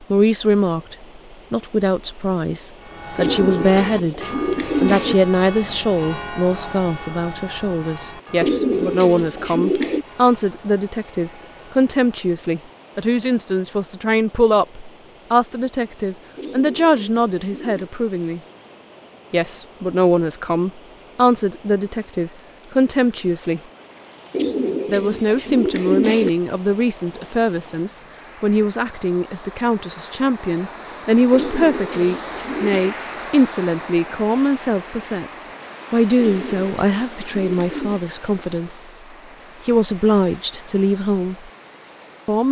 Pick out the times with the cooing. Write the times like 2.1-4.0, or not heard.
3.1-5.2, 8.4-10.1, 16.4-17.9, 24.3-26.3, 31.3-33.0, 36.1-38.0.